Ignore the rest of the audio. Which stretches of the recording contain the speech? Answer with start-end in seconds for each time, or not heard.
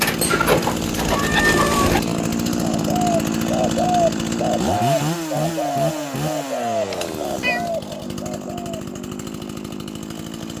not heard.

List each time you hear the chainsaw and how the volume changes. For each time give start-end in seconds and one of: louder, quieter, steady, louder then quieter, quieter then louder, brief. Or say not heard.
0.0-10.5 quieter.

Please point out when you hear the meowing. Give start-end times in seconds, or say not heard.
1.1-1.9, 6.9-7.8.